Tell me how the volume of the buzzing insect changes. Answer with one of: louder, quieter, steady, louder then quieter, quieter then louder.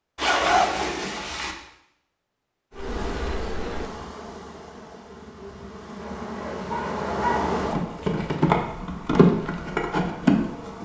quieter then louder.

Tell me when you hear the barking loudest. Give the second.
7 s.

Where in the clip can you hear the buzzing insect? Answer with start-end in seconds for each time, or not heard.
2.8-10.8.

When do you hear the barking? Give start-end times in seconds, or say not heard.
6.0-7.5.